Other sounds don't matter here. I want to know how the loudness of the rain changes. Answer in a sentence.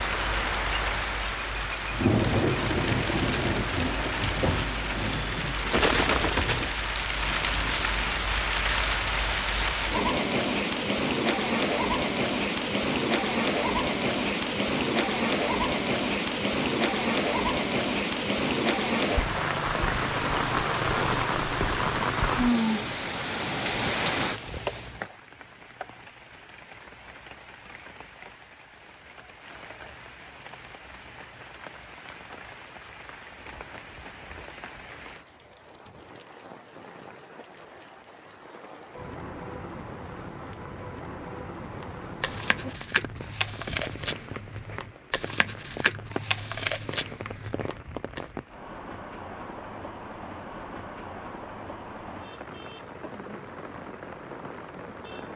The loudness of the rain goes down.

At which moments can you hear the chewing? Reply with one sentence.
The chewing can be heard from 41.7 to 48.2 s.